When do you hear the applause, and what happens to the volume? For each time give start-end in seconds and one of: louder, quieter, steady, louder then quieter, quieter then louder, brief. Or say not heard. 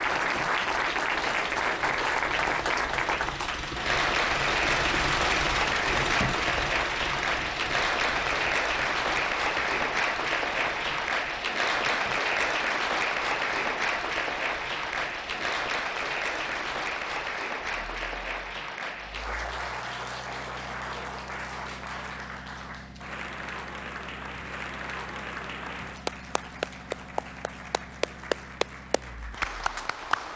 0.0-30.3 quieter.